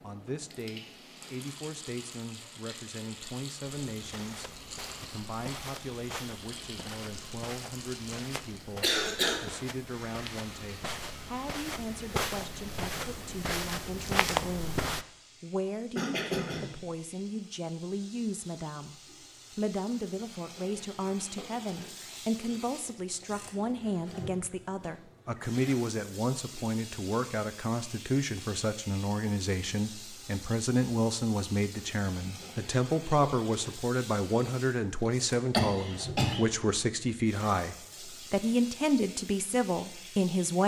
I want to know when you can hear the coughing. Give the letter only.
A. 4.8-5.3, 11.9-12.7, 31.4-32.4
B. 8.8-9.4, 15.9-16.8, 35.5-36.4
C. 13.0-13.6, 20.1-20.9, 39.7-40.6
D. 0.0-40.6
B.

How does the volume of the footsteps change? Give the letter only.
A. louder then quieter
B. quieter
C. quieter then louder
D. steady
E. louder
E.